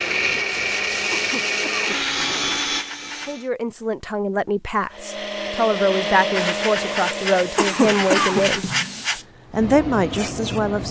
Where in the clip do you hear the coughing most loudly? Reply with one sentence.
The loudest moment of the coughing is at 8 seconds.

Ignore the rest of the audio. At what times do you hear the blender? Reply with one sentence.
You can hear the blender from 0.0 to 3.5 s and from 4.9 to 8.6 s.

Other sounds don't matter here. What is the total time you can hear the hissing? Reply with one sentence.
The hissing can be heard for 8 seconds in total.